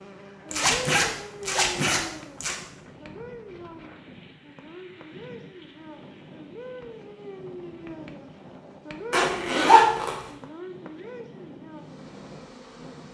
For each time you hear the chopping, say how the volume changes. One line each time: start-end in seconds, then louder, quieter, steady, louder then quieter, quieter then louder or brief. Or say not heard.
not heard.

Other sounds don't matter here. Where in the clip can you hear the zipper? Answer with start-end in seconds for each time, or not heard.
0.5-2.5, 9.1-10.2.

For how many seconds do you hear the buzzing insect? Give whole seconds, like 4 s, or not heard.
13 s.